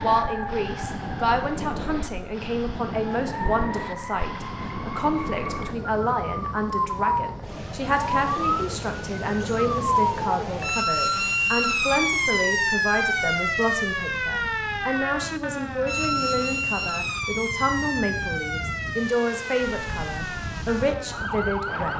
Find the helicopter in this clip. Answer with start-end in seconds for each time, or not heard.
not heard.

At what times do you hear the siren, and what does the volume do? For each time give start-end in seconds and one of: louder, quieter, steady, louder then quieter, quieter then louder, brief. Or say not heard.
0.0-21.9 louder then quieter.